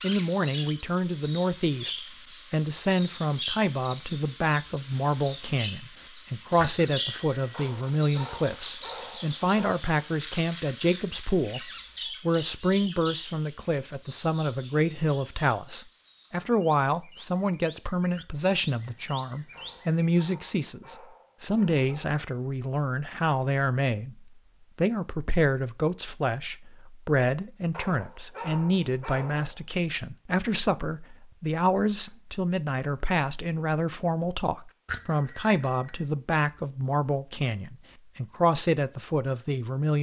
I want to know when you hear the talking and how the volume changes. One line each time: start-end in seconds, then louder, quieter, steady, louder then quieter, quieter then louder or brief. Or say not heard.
0.0-39.9 steady.